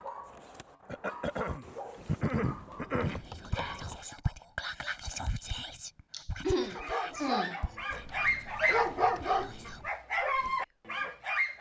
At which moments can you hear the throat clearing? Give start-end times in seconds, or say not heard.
0.8-3.2, 6.1-7.6.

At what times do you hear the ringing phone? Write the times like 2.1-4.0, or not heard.
not heard.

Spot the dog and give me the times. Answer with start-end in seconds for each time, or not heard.
0.0-4.2, 6.5-11.5.